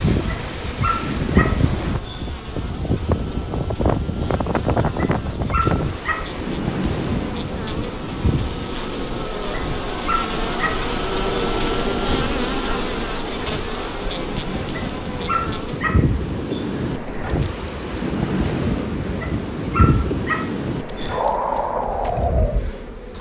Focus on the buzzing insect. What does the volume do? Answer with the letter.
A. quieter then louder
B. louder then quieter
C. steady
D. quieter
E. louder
B.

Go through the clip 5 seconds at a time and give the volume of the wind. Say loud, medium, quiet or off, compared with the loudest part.
loud, loud, medium, loud, loud.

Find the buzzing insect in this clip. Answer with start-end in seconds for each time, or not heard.
0.0-23.1.